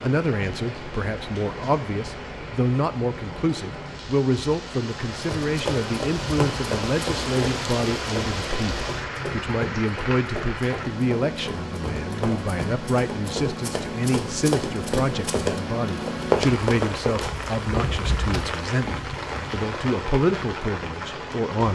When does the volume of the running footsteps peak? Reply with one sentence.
The volume of the running footsteps peaks at 16 seconds.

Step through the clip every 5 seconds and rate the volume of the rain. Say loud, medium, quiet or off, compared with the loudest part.
medium, loud, loud, loud, loud.